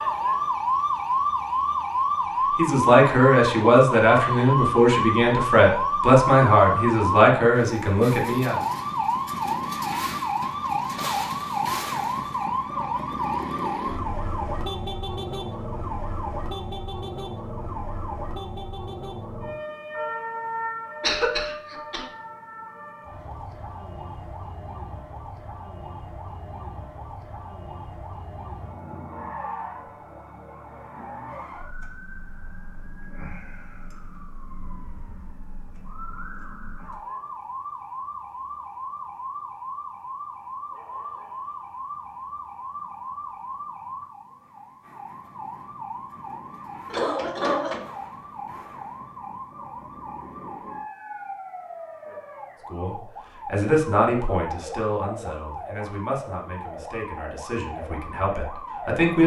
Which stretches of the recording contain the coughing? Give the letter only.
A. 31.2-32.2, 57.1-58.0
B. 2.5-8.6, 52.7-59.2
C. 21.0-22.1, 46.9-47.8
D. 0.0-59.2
C.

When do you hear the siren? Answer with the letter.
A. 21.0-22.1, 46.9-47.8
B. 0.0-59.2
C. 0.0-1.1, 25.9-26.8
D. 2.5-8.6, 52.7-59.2
B.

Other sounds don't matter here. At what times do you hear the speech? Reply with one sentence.
The speech can be heard from 2.5 to 8.6 s and from 52.7 to 59.2 s.